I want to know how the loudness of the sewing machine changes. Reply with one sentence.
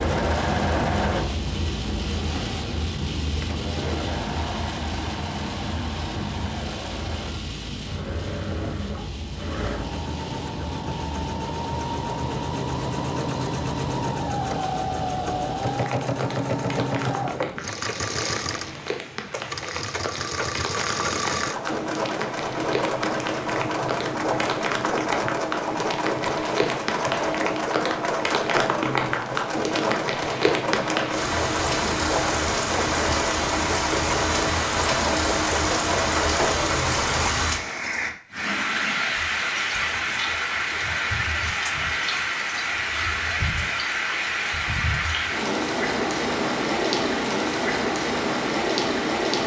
The loudness of the sewing machine goes up.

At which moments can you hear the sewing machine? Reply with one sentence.
The sewing machine can be heard from 0.0 to 37.3 s.